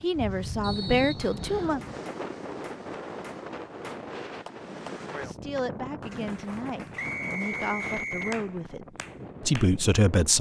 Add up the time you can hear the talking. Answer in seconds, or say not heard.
7 s.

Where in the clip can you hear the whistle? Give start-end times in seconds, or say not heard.
0.6-1.8, 7.0-8.4.